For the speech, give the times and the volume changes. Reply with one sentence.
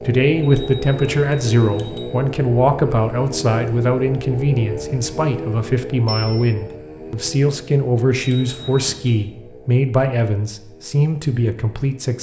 You can hear the speech from 0.0 to 12.1 s, at a steady volume.